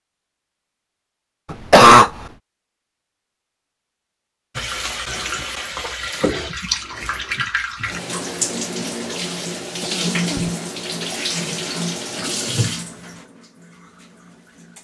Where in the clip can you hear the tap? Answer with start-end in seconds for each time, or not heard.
4.5-14.7.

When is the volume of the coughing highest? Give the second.
2 s.